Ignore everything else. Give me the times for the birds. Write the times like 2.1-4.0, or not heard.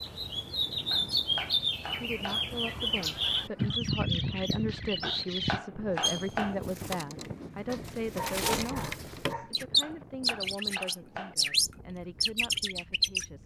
0.0-13.2.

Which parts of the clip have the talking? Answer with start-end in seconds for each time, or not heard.
2.0-13.4.